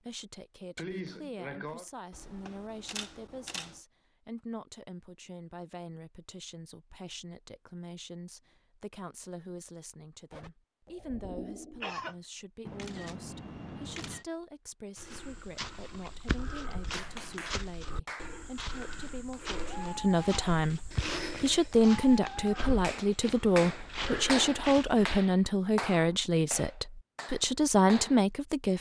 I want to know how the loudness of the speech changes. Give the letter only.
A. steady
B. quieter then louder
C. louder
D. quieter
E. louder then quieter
C.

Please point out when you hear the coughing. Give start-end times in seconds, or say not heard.
0.8-1.9, 10.3-12.2, 20.9-21.6.